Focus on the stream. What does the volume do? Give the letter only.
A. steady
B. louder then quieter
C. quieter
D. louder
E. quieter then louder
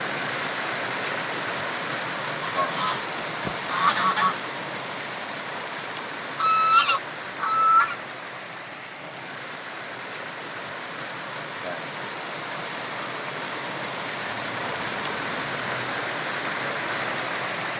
E.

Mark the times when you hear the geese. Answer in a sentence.
The geese can be heard from 2.5 to 4.4 s, from 6.3 to 8.0 s and from 14.3 to 16.0 s.